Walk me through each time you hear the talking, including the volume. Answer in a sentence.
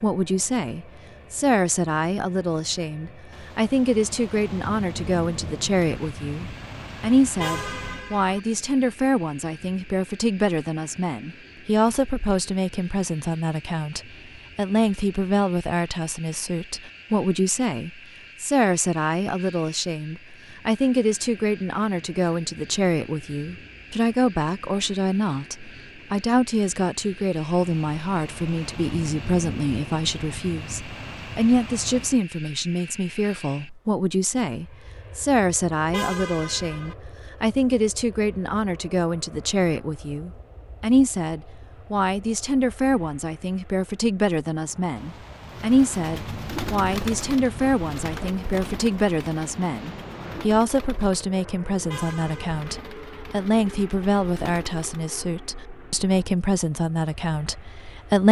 The talking can be heard from 0.0 to 58.2 s, at a steady volume.